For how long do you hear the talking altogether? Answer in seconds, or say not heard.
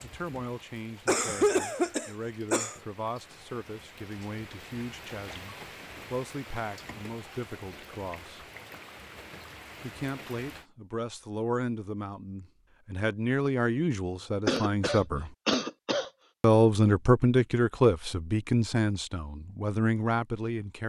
18 s.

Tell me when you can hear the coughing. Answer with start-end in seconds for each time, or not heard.
1.1-2.8, 14.4-16.1.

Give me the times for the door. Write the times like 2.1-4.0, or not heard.
not heard.